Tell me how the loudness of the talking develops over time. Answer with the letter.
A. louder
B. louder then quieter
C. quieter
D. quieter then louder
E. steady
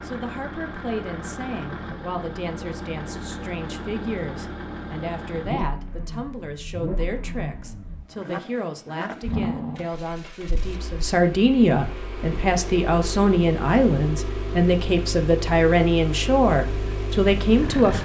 A.